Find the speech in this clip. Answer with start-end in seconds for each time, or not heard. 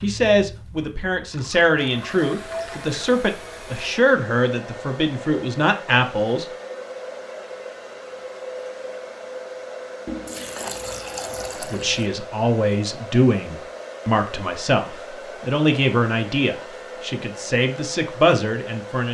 0.0-6.5, 11.6-19.0.